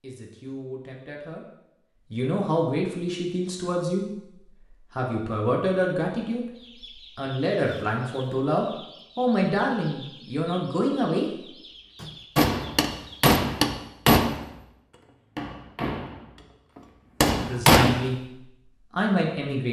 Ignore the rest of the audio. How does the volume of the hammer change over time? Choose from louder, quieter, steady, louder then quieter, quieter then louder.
quieter then louder.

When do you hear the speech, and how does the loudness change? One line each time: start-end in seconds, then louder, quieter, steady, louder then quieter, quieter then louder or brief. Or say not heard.
0.0-11.3 louder
17.4-19.6 brief.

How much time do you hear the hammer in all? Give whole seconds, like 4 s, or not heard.
6 s.